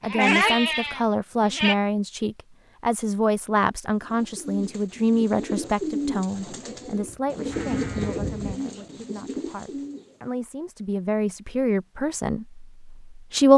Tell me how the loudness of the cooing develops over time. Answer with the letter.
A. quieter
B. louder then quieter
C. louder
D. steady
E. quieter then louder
B.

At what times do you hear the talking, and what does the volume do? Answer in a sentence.
You can hear the talking from 0.0 to 13.5 s, getting quieter then louder.